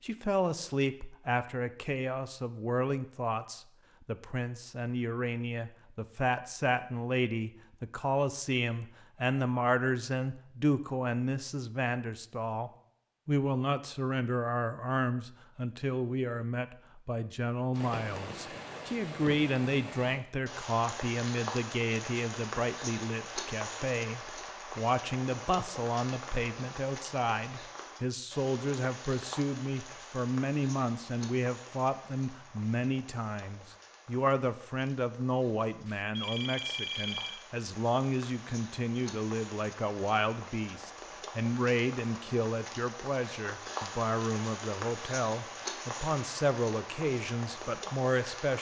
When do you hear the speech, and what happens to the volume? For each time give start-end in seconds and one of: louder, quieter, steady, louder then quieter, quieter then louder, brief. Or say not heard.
0.0-48.5 steady.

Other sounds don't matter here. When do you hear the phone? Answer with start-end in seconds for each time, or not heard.
35.9-37.5.